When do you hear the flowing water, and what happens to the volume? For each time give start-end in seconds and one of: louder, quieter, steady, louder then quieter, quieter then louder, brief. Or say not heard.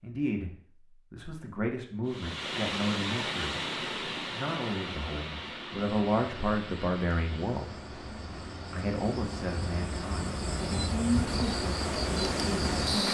2.0-13.0 quieter then louder.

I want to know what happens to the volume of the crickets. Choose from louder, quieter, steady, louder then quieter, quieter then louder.
louder.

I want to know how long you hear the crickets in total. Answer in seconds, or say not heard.
7 s.